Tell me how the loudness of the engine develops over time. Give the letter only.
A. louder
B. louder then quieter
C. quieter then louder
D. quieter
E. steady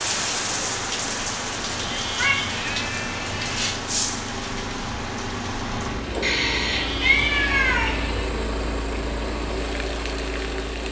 A.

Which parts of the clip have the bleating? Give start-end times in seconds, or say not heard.
1.7-3.7, 6.7-8.3.